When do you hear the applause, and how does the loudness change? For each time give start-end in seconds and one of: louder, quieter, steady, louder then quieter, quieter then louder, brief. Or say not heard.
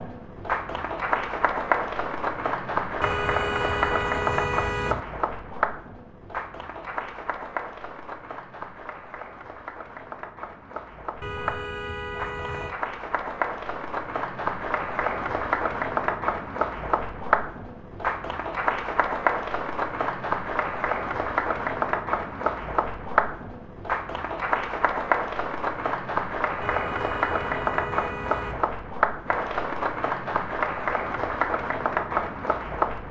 0.0-33.0 quieter then louder.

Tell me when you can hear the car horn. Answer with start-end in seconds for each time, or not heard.
3.0-5.0, 11.2-12.8, 26.6-28.6.